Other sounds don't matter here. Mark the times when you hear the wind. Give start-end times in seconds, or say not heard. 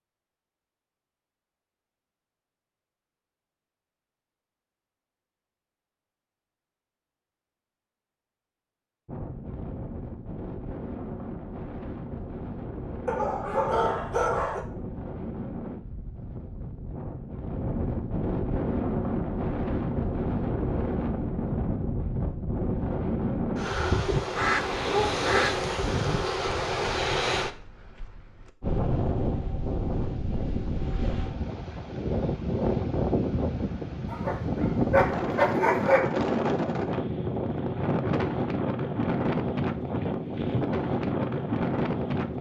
9.1-42.3.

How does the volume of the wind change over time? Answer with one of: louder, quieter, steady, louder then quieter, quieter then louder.
louder.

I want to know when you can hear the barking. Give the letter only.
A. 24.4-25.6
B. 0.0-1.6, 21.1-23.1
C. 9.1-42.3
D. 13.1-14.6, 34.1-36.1
D.